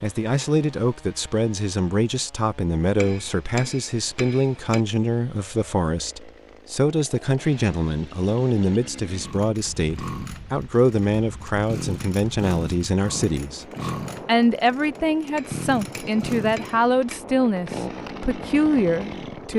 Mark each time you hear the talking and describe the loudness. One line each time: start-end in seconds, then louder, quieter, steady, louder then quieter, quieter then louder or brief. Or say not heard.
0.0-19.5 steady.